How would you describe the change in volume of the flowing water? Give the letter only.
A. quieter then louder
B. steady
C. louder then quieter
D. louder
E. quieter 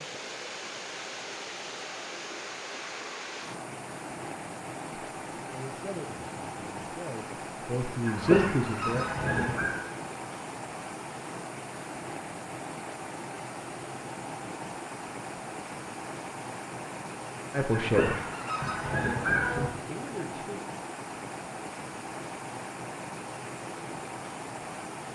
B.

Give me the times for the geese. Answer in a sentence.
You can hear the geese from 8.1 to 9.8 s and from 17.7 to 19.7 s.